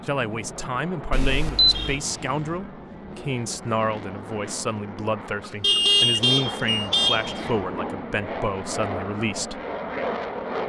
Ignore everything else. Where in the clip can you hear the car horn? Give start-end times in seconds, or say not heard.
1.7-2.6, 5.6-7.5.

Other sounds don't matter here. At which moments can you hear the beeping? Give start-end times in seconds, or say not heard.
1.1-2.0, 5.4-6.9.